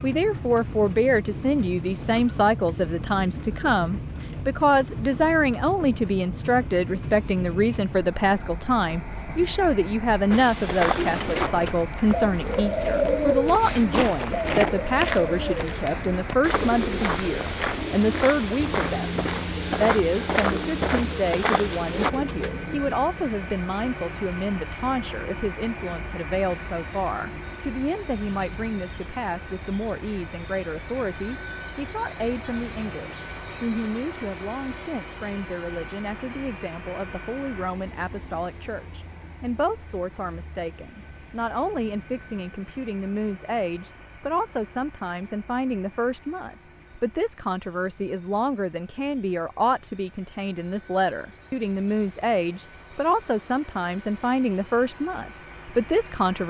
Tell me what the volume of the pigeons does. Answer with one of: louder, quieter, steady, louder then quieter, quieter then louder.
quieter.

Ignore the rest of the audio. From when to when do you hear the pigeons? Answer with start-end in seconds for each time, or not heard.
10.9-22.9.